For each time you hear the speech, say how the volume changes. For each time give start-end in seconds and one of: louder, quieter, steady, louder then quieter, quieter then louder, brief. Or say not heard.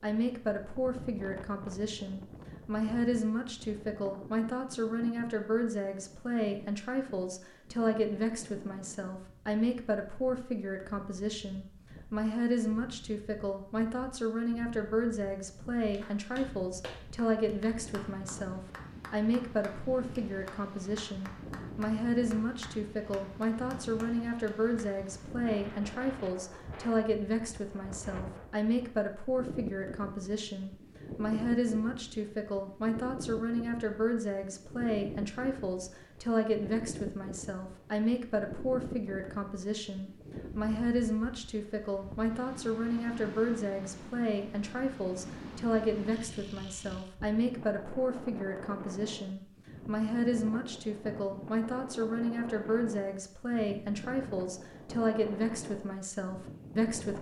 0.0-57.1 steady.